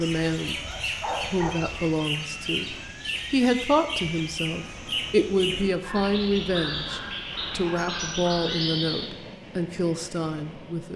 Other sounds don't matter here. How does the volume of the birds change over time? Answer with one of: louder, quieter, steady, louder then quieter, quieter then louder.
steady.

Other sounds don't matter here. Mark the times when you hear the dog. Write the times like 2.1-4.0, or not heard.
0.5-1.5, 5.8-8.7.